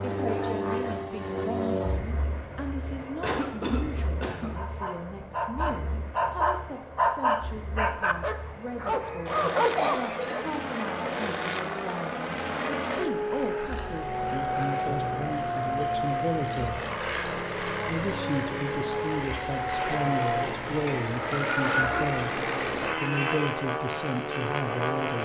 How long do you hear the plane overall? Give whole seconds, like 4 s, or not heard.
25 s.